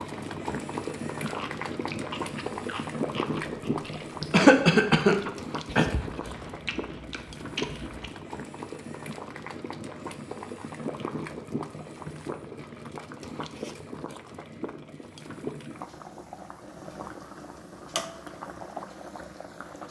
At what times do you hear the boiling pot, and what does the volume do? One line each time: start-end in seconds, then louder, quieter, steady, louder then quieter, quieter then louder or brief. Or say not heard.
0.0-19.8 quieter.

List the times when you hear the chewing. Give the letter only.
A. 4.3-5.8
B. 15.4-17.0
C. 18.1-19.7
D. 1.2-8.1
D.